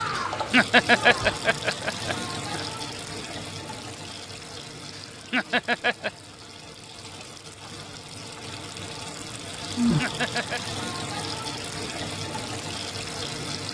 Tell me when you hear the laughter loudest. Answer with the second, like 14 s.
1 s.